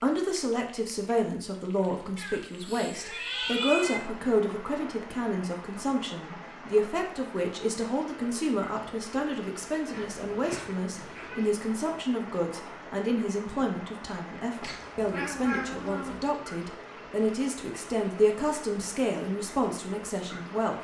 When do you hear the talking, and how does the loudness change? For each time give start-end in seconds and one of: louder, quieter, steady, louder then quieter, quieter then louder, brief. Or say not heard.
0.0-20.7 steady.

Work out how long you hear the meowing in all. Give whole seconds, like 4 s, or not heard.
5 s.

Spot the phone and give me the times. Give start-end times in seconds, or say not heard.
not heard.